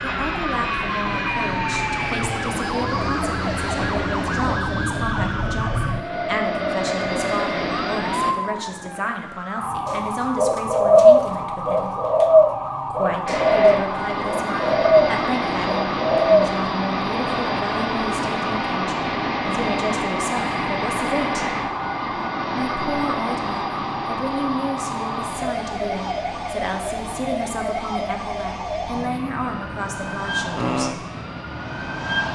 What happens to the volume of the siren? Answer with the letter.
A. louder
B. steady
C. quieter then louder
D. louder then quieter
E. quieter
B.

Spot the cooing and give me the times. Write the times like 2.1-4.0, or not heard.
9.8-16.6.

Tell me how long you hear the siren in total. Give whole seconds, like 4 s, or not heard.
32 s.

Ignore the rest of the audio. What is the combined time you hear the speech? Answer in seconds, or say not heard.
29 s.